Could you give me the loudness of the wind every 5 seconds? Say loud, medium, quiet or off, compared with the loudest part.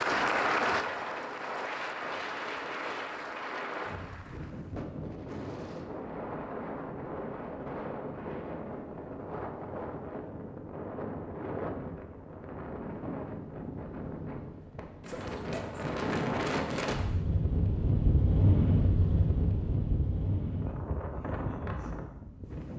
medium, medium, medium, loud, medium.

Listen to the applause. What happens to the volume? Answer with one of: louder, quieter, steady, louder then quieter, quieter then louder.
quieter.